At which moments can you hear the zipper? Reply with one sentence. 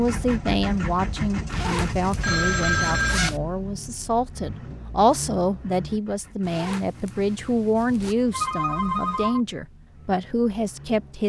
You can hear the zipper from 1.4 to 3.4 s and from 6.4 to 8.2 s.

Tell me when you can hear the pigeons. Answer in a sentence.
The pigeons can't be heard in this clip.